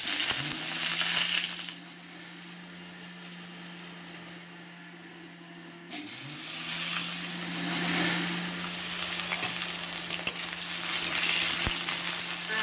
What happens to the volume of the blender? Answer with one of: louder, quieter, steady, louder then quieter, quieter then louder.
louder then quieter.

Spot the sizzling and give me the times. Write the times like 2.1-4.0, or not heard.
0.0-1.8, 6.2-12.5.